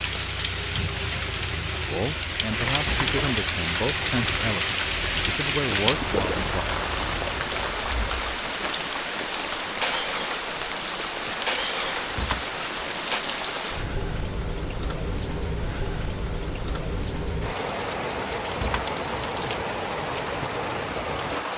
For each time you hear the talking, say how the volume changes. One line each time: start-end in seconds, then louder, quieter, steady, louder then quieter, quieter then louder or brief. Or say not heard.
1.9-6.7 quieter then louder.